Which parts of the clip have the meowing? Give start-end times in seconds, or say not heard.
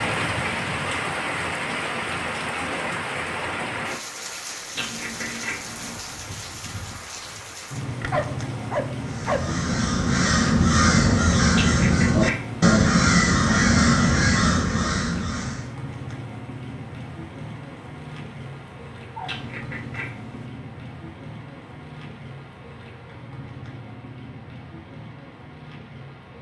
4.8-6.0, 11.6-12.8, 19.2-20.5.